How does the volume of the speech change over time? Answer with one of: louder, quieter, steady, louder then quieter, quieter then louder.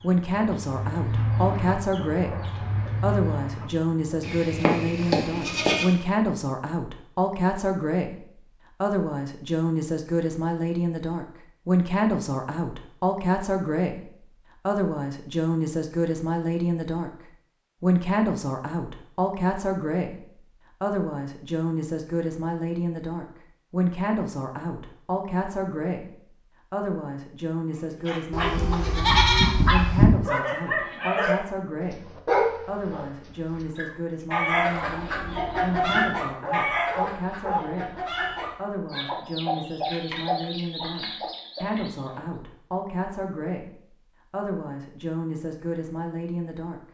quieter.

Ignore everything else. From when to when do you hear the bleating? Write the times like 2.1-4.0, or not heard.
4.2-6.0, 28.3-30.1.